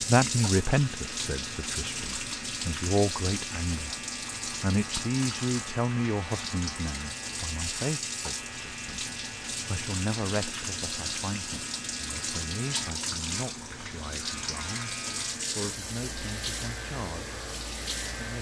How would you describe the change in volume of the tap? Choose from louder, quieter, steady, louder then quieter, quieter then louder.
steady.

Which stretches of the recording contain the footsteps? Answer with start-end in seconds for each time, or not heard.
not heard.